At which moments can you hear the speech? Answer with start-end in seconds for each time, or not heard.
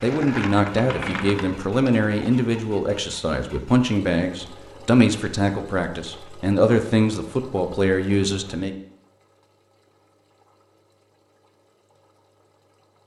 0.0-8.7.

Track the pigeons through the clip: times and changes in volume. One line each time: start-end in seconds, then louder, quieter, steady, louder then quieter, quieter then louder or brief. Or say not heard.
not heard.